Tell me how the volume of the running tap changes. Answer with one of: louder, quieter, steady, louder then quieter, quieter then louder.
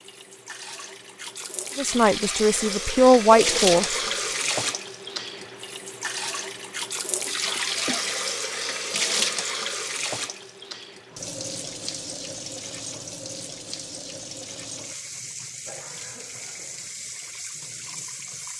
quieter.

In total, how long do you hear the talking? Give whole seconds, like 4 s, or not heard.
2 s.